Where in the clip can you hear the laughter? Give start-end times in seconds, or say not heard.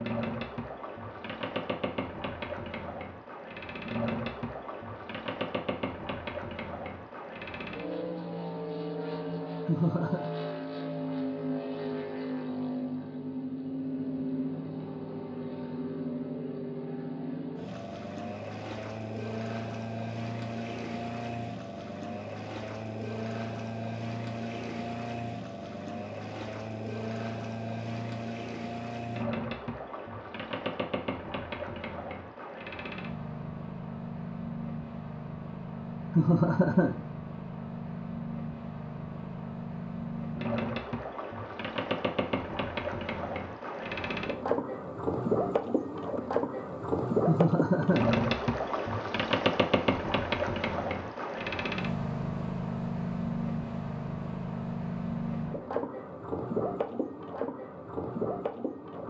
9.7-10.2, 36.1-37.0, 47.2-48.1.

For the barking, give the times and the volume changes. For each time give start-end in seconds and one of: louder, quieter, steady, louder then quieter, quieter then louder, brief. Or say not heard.
not heard.